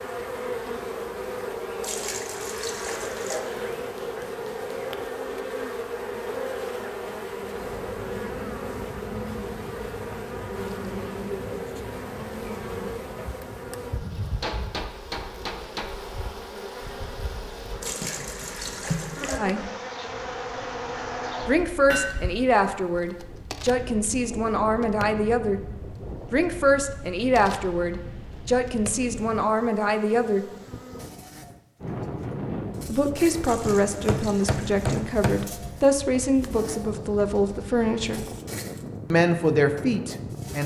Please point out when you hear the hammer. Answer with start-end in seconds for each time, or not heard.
3.2-4.8, 14.2-15.9, 21.9-22.4, 33.6-35.5.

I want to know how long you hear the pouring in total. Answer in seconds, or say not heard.
5 s.